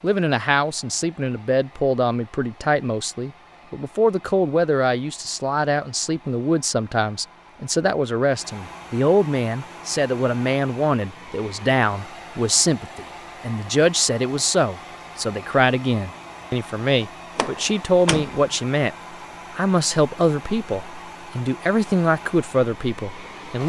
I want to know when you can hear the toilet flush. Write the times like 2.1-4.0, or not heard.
not heard.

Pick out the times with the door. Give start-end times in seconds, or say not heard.
17.4-18.6.